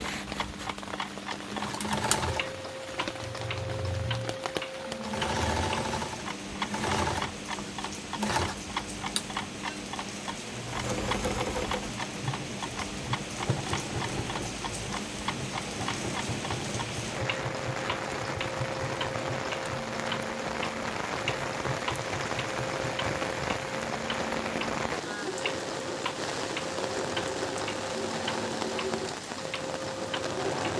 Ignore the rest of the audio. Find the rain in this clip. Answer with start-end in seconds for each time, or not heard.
0.0-30.7.